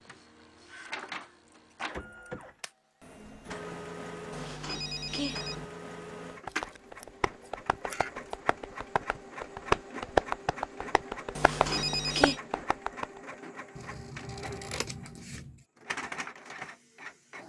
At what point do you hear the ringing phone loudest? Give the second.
12 s.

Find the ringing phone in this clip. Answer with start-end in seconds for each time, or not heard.
4.3-5.7, 11.3-12.4.